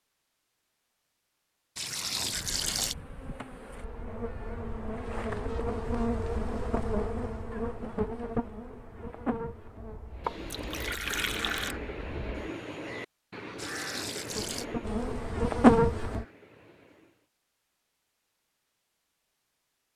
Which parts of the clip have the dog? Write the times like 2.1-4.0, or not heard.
not heard.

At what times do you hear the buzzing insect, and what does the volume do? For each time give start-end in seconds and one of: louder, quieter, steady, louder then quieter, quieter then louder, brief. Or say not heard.
2.3-12.5 louder then quieter
14.3-16.2 brief.